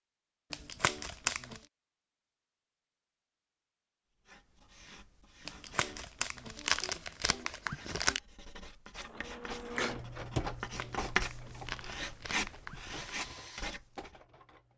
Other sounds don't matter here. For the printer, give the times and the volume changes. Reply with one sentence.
The printer can be heard from 9.0 to 14.7 s, getting quieter.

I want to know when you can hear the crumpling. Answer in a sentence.
The crumpling can be heard from 0.5 to 1.6 s, from 5.5 to 8.2 s and from 10.6 to 13.2 s.